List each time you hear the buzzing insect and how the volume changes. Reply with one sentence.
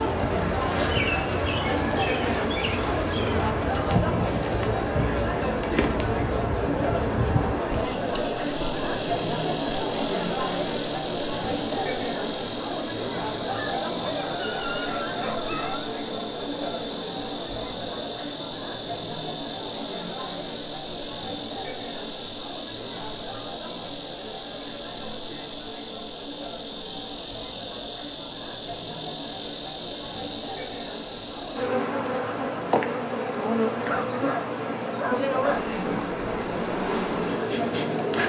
The buzzing insect can be heard from 0.0 to 38.2 s, at a steady volume.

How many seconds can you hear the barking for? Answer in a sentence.
You can hear the barking for 4 seconds altogether.